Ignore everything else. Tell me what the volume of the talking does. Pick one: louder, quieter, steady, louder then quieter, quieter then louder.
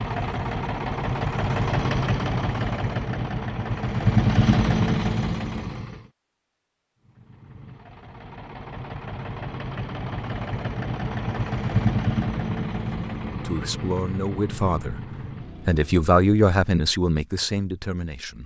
louder then quieter.